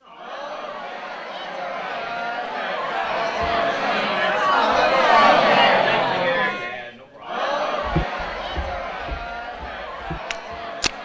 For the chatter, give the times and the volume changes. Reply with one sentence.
You can hear the chatter from 0.0 to 11.0 s, getting louder then quieter.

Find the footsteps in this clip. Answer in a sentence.
The footsteps can be heard from 7.8 to 10.9 s.